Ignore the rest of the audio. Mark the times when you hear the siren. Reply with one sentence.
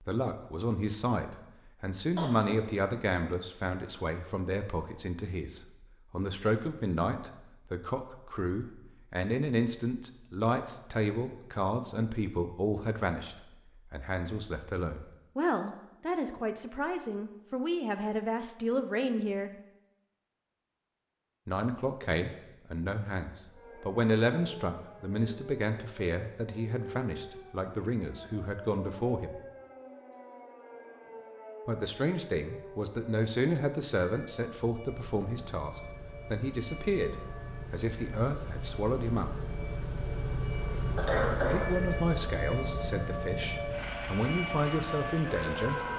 The siren can be heard from 23.4 to 45.9 s.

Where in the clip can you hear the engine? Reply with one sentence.
You can hear the engine from 34.8 to 45.9 s.